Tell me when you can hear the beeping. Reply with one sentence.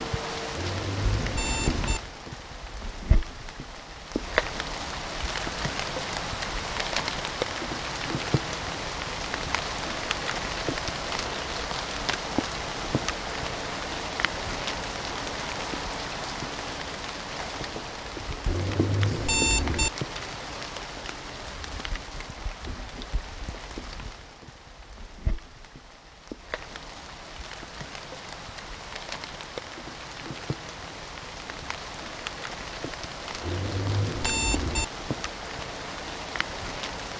You can hear the beeping from 0.6 to 2.0 s, from 18.4 to 19.9 s and from 33.4 to 34.9 s.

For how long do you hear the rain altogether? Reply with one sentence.
You can hear the rain for 37 seconds altogether.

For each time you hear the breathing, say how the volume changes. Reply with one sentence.
You can't hear the breathing here.